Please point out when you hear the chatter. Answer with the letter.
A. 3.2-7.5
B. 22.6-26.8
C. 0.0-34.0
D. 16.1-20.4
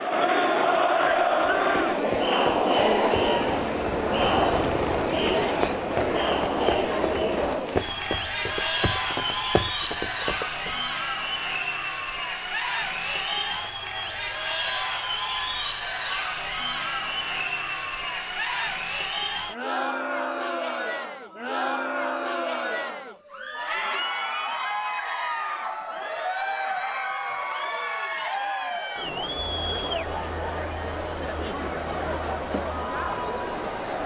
C.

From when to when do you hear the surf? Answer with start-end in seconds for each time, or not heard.
not heard.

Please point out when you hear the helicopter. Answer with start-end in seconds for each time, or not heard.
3.2-7.5.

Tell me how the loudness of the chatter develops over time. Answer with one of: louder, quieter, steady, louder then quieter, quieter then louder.
quieter.